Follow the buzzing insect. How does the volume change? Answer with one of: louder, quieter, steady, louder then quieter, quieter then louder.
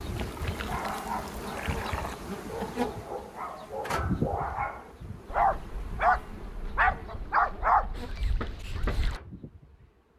quieter.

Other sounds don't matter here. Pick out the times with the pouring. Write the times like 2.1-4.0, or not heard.
0.1-2.1.